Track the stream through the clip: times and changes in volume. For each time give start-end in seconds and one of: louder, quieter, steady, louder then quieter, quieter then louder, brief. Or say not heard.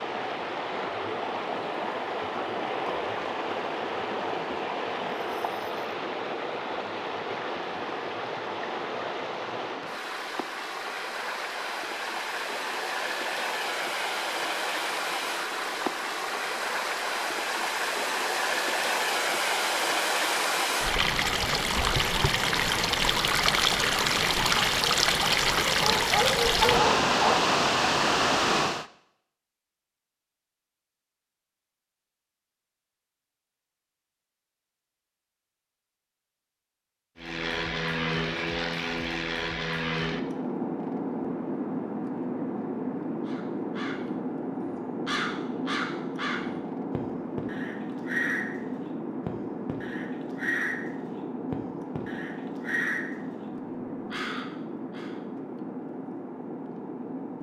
0.0-28.9 louder.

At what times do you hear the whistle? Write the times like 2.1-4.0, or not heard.
not heard.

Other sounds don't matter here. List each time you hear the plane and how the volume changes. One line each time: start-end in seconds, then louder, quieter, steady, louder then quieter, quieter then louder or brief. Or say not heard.
37.1-57.3 quieter.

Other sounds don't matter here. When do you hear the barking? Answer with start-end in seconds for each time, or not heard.
25.6-27.4.